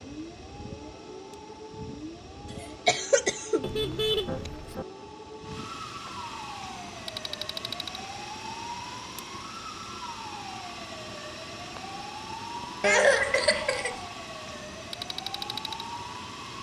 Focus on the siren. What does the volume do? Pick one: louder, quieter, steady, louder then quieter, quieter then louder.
steady.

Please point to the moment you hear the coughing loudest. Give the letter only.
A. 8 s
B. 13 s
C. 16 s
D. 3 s
B.